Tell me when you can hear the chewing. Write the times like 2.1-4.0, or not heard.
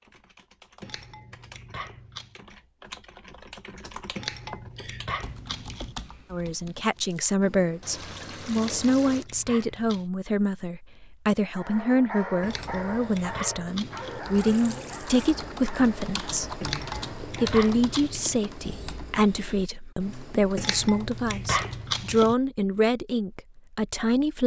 0.8-2.4, 4.2-6.0, 8.6-10.1, 12.4-14.2, 16.6-18.4, 20.6-22.4.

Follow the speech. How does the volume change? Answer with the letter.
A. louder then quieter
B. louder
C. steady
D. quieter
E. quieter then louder
C.